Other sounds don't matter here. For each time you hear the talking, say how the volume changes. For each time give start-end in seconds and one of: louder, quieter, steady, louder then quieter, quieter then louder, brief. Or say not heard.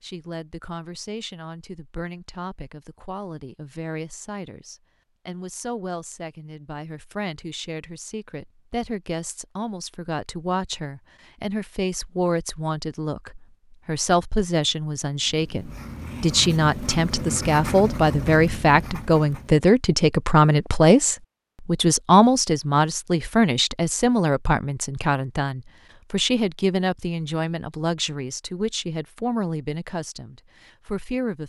0.0-31.4 louder then quieter.